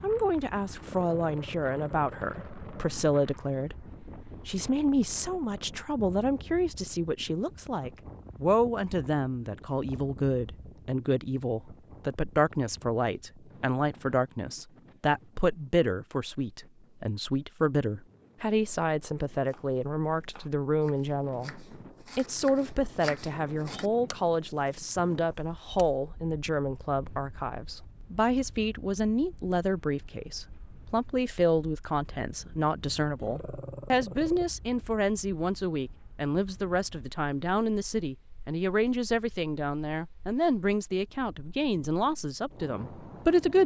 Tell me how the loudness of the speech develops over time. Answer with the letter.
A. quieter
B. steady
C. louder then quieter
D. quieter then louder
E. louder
B.